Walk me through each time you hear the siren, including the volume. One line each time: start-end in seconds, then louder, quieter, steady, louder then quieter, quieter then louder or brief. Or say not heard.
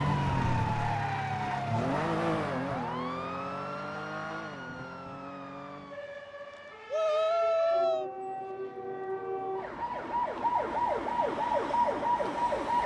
0.0-12.8 quieter then louder.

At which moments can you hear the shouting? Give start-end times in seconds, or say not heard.
6.9-8.1.